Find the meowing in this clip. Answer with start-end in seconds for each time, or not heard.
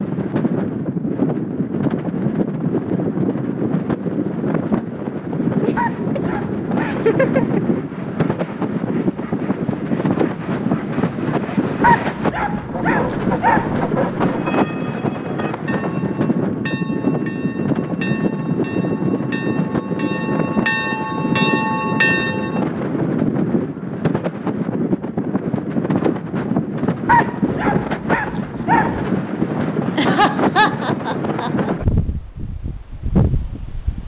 not heard.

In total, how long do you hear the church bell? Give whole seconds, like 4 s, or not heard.
8 s.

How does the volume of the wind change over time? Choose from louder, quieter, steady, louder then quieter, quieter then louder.
steady.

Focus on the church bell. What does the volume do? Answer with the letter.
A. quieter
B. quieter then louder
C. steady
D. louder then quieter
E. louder
E.